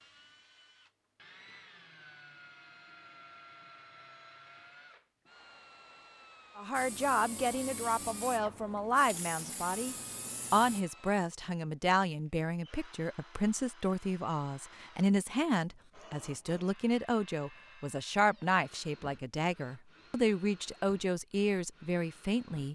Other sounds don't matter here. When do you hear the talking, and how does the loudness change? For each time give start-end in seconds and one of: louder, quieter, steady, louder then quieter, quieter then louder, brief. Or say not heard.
6.5-22.6 steady.